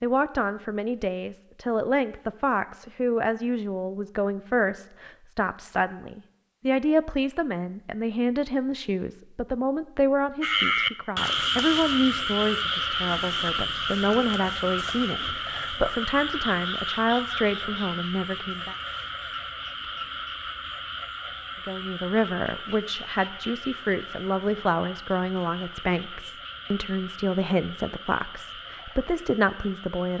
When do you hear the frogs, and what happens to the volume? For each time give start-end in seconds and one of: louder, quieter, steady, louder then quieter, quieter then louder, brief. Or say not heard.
10.4-30.1 quieter.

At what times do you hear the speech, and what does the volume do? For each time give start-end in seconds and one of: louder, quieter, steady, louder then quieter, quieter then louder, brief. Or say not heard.
0.0-18.8 steady
21.6-30.1 steady.